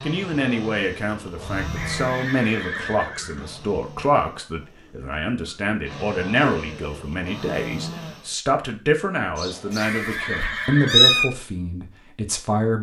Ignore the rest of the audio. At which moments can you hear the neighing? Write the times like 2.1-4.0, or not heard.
1.8-3.5, 9.8-11.2.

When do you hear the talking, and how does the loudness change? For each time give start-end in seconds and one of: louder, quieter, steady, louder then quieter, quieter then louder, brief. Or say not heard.
0.0-12.7 steady.